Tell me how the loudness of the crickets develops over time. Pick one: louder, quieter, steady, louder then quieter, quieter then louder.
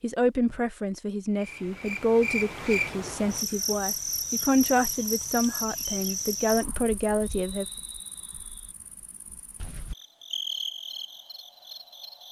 quieter then louder.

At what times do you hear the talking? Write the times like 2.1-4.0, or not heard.
0.0-7.7.